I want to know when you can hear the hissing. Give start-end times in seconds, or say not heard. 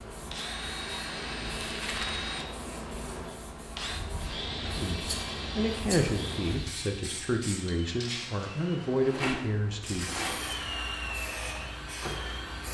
0.0-12.6.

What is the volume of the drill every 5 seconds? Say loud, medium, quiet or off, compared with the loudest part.
loud, medium, loud.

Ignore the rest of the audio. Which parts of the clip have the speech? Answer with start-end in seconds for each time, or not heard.
4.8-10.1.